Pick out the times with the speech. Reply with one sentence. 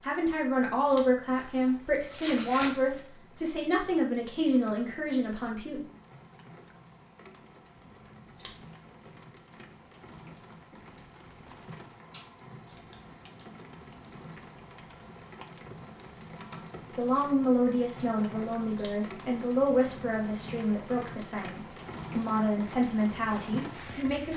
The speech can be heard from 0.0 to 5.8 s and from 16.9 to 24.3 s.